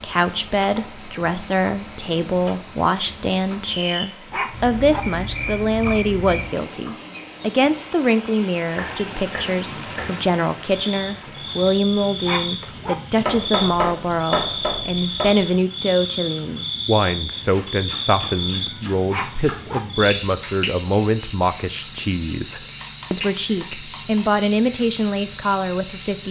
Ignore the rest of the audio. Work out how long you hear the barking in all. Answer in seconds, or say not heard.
2 s.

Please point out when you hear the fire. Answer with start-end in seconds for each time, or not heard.
not heard.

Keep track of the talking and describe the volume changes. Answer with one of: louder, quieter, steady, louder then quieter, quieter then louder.
steady.